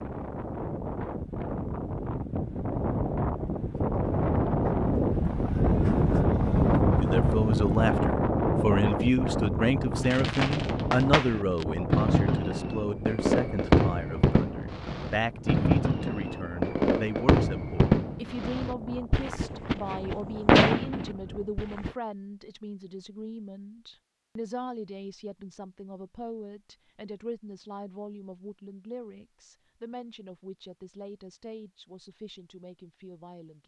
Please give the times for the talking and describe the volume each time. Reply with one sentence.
The talking can be heard from 7.0 to 33.6 s, getting quieter.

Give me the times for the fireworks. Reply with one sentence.
The fireworks can be heard from 10.0 to 21.9 s.